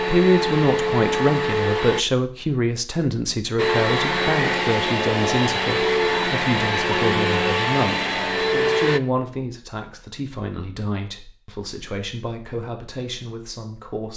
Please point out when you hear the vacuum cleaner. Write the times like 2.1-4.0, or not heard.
0.0-2.0, 3.5-9.0.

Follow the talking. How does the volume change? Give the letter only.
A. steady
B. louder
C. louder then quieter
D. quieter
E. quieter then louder
D.